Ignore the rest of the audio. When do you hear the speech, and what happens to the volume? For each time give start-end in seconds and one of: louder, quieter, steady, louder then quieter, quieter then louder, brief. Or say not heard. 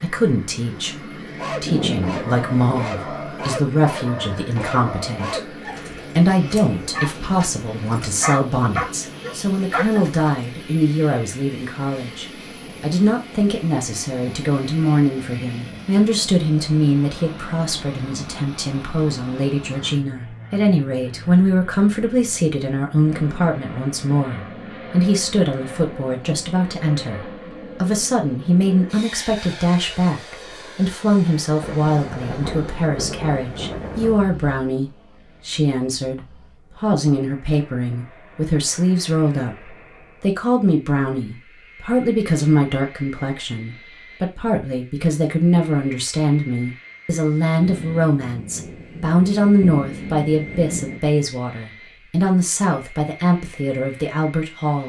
0.0-54.8 steady.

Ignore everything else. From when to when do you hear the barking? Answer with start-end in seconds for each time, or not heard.
1.4-10.3.